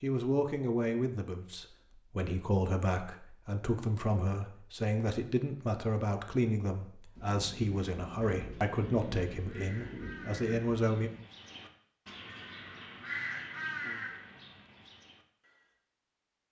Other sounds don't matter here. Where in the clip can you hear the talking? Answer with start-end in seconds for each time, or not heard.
0.0-11.1.